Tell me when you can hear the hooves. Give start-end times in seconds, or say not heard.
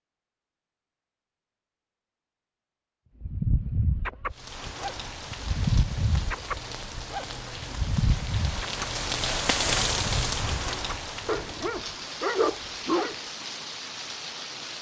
not heard.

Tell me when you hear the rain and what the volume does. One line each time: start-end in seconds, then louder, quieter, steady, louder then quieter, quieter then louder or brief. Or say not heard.
4.3-14.7 louder then quieter.